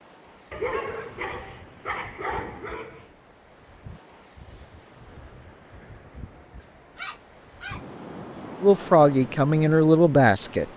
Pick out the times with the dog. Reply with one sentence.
You can hear the dog from 0.5 to 3.0 s and from 6.6 to 8.0 s.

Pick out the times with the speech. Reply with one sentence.
You can hear the speech from 8.6 to 10.7 s.